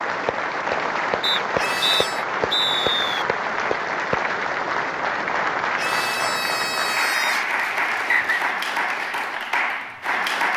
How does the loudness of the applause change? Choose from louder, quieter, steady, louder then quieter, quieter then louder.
steady.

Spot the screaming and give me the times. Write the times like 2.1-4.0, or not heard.
1.6-2.2, 5.8-7.5.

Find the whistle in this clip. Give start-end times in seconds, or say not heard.
1.2-3.2, 7.5-8.4.